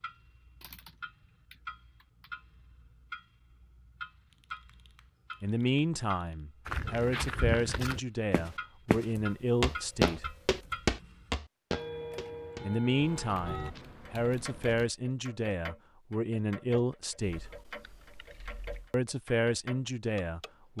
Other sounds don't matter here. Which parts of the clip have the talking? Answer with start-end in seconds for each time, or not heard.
5.4-10.3, 12.6-17.6, 18.9-20.7.